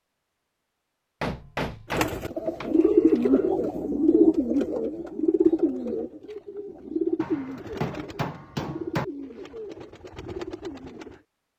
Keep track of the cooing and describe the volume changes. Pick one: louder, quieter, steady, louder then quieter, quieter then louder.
quieter.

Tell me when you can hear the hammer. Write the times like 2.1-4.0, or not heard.
1.2-3.2, 7.2-9.1.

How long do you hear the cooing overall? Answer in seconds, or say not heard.
9 s.